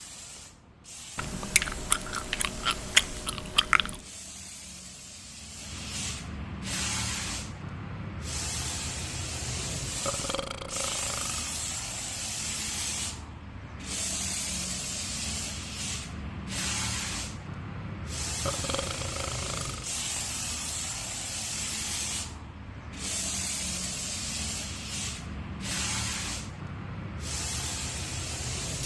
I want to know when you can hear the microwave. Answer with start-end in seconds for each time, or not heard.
not heard.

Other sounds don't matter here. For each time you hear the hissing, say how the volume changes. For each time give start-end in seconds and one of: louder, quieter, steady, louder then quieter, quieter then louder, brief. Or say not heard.
0.0-28.8 louder.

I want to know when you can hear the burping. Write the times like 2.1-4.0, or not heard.
10.1-11.4, 18.4-20.0.